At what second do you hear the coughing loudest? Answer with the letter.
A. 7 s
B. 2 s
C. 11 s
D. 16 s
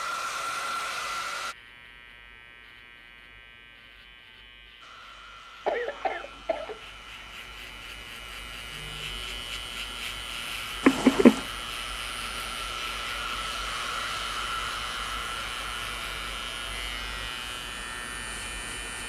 C.